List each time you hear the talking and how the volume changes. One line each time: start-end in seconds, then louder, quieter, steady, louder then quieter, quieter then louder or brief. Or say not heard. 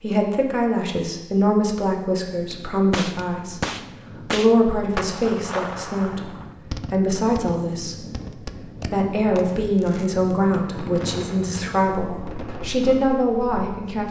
0.0-14.0 steady.